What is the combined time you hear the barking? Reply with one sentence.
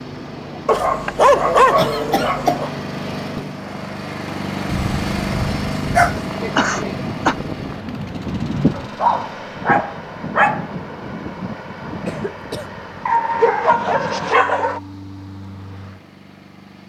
You can hear the barking for 7 seconds altogether.